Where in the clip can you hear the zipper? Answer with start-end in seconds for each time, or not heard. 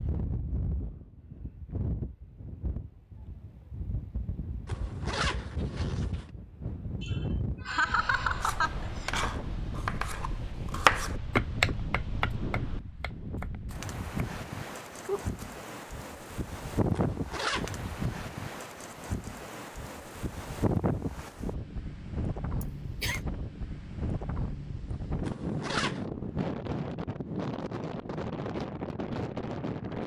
4.7-6.2, 16.9-17.9, 25.2-26.1.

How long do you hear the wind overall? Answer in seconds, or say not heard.
30 s.